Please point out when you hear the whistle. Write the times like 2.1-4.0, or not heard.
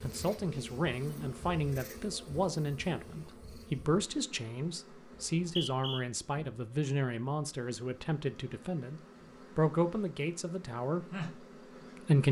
5.2-6.0.